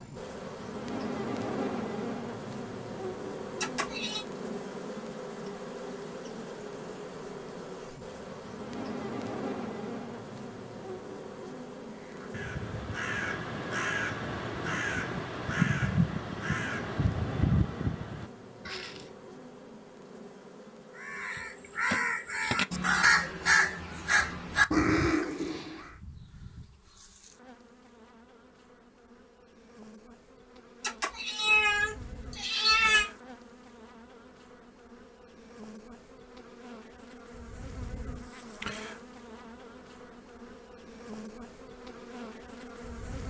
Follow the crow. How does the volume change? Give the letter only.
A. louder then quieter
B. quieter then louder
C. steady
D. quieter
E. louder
E.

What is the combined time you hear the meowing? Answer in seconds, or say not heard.
3 s.